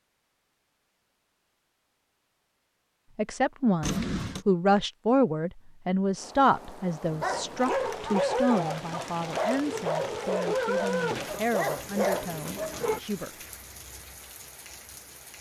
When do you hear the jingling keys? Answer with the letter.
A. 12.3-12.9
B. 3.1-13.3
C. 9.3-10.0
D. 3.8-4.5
D.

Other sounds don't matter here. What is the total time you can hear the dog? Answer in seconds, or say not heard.
6 s.